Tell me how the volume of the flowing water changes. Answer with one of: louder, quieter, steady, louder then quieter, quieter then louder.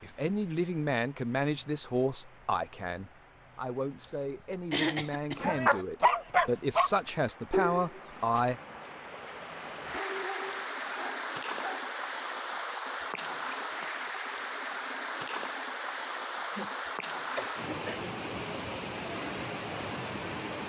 louder.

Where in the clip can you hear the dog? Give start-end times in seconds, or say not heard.
5.4-6.9, 7.5-11.9.